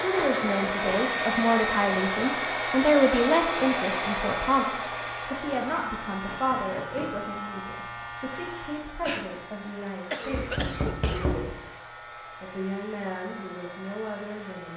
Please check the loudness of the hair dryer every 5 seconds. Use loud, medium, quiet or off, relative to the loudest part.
loud, quiet, quiet.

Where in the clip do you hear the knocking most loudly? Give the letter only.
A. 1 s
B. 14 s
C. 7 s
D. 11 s
D.